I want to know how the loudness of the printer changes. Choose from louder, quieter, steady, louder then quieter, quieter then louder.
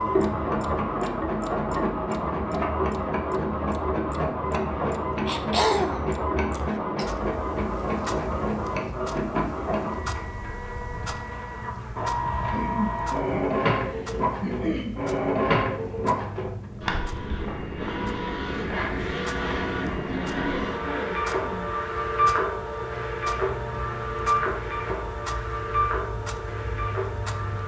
steady.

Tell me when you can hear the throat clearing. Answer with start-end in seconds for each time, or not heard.
5.2-7.0, 12.5-14.9, 20.1-21.6.